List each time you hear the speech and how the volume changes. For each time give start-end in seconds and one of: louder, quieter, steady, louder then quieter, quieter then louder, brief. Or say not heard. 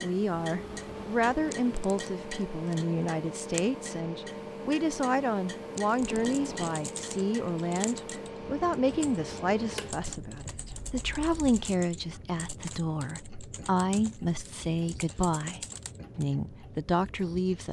0.0-17.6 steady.